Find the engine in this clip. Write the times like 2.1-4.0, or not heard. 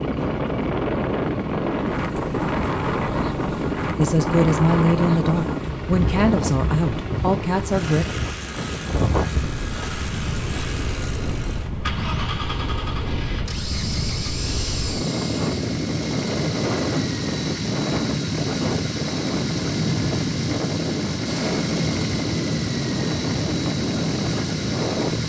0.0-25.2.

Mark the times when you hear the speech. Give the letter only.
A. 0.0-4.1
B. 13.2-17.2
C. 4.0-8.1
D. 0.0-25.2
C.